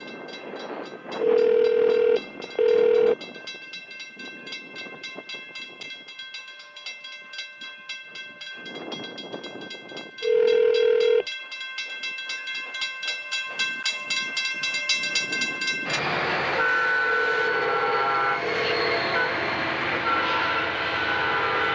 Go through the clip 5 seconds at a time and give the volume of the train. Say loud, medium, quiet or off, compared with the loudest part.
quiet, quiet, medium, loud, loud.